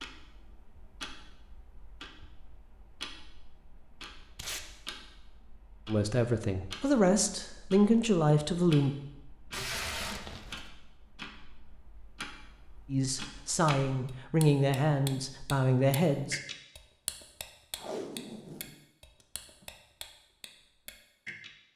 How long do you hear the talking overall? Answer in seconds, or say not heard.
7 s.